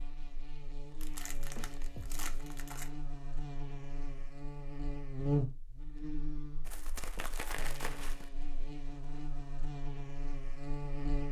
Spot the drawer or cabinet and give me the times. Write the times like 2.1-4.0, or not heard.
not heard.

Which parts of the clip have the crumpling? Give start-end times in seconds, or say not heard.
1.0-2.9, 6.7-8.3.